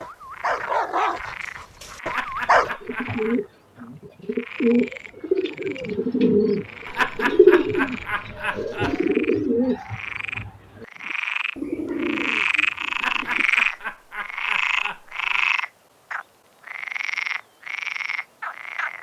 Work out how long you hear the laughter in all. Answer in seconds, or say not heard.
6 s.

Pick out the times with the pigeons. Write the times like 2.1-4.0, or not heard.
2.8-13.5.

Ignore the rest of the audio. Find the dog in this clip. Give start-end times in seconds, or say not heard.
0.0-2.8.